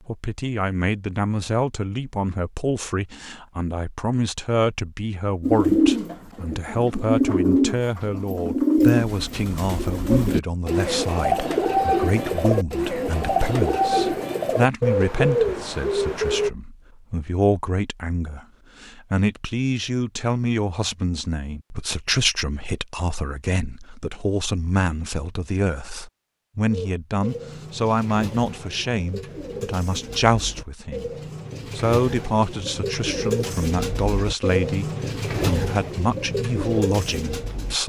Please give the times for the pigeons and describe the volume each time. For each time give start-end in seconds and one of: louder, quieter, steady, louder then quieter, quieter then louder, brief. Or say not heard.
5.4-16.5 steady
26.7-37.8 louder.